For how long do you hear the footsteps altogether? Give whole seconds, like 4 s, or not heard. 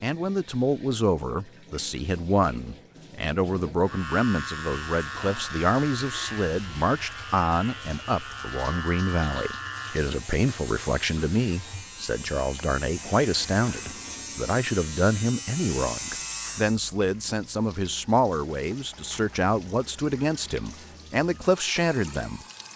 not heard.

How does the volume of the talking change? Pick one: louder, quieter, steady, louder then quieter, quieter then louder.
steady.